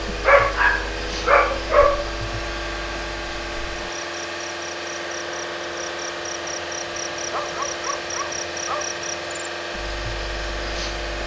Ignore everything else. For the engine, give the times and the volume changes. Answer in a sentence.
You can hear the engine from 0.0 to 11.2 s, at a steady volume.